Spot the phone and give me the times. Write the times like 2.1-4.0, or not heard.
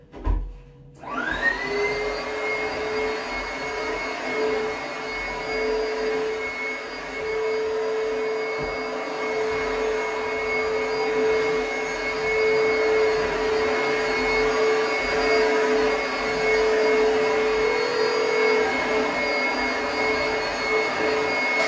17.6-18.9.